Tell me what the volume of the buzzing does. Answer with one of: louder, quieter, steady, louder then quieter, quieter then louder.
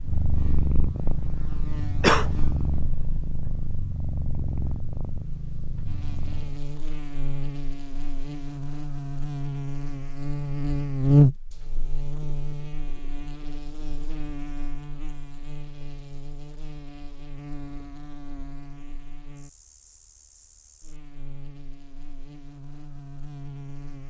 louder then quieter.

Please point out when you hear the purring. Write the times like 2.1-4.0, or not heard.
0.0-6.7.